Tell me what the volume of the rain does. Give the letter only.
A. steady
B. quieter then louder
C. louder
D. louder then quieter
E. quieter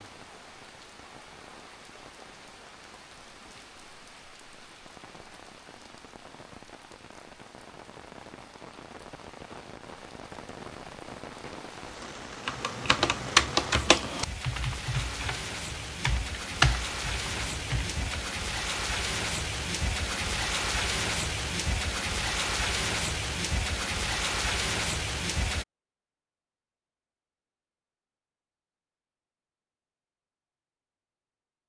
C.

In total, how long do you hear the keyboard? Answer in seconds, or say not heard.
6 s.